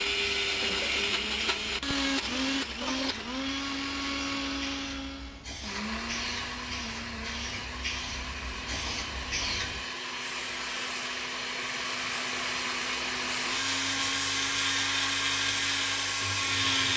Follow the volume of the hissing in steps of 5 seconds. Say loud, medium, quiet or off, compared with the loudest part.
medium, loud, loud, loud.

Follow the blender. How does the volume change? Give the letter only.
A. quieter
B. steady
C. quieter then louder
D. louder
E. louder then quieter
C.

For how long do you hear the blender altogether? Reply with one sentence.
The blender can be heard for 17 seconds in total.